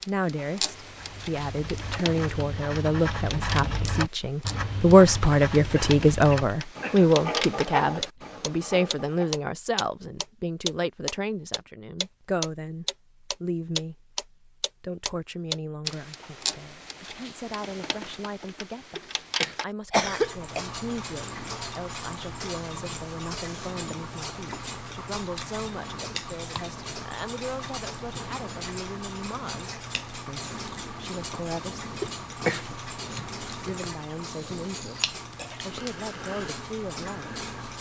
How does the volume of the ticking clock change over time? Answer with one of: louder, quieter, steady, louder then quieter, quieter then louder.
louder then quieter.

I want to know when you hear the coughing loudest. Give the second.
20 s.